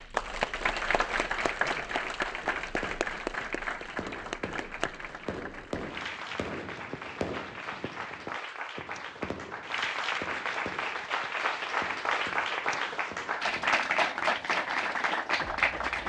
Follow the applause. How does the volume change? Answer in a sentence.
The loudness of the applause goes down, then up.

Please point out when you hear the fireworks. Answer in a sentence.
The fireworks can be heard from 2.4 to 13.7 s.